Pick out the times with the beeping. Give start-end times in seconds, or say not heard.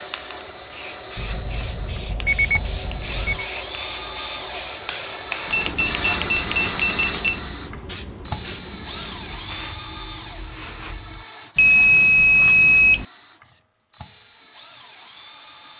1.1-3.5, 5.5-7.4, 11.6-13.1.